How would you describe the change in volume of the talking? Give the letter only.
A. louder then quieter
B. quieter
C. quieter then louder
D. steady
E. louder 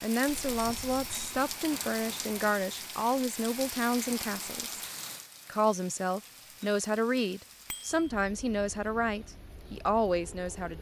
D.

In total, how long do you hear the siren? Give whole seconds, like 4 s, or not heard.
not heard.